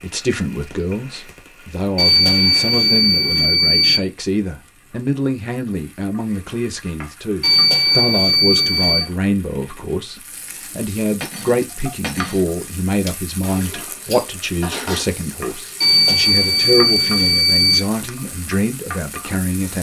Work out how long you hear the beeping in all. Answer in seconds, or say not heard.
6 s.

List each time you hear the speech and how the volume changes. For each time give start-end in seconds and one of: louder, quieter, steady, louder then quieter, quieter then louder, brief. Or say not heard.
0.0-19.7 steady.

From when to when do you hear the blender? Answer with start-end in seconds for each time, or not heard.
not heard.